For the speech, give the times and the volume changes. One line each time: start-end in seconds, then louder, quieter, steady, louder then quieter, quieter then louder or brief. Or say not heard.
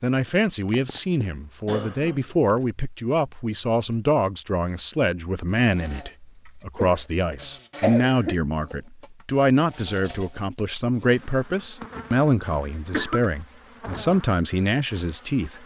0.0-15.6 steady.